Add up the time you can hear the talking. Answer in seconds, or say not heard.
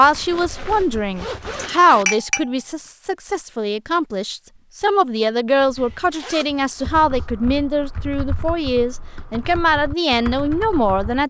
11 s.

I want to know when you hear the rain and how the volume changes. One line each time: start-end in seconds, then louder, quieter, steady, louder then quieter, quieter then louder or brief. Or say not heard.
not heard.